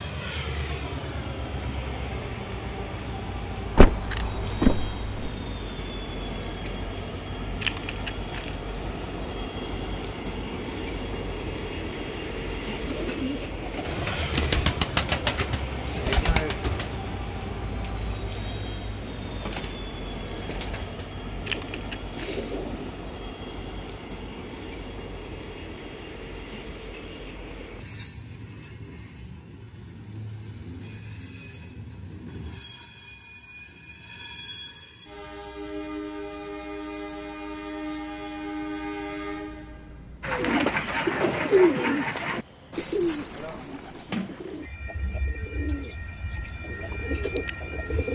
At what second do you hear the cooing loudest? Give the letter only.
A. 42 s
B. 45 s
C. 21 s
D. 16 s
A.